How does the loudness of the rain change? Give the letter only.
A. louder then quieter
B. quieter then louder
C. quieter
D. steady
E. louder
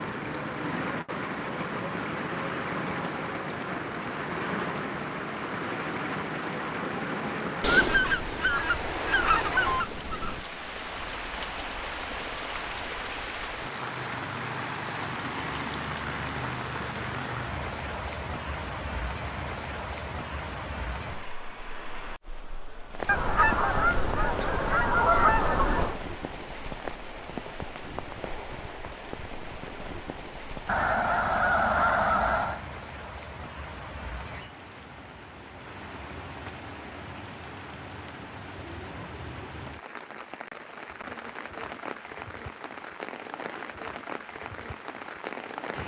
C.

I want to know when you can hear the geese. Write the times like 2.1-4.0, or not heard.
7.6-10.4, 23.1-26.0, 30.6-32.6.